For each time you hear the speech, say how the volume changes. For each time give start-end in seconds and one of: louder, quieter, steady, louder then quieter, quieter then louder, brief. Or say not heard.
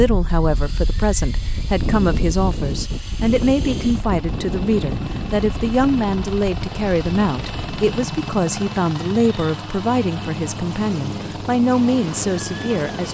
0.0-13.0 steady.